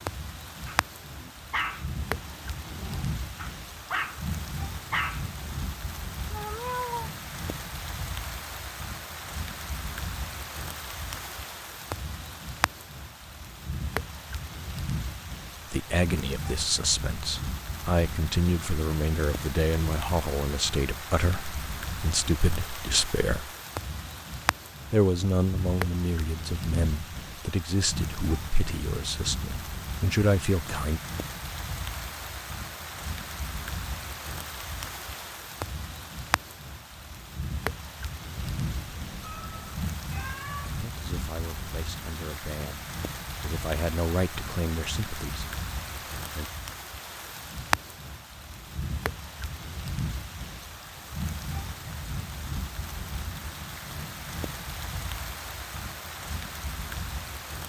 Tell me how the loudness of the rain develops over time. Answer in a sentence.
The loudness of the rain stays about the same.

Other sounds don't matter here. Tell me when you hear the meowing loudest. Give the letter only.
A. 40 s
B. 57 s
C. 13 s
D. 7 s
D.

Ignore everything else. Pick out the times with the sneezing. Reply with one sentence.
The sneezing can't be heard in this clip.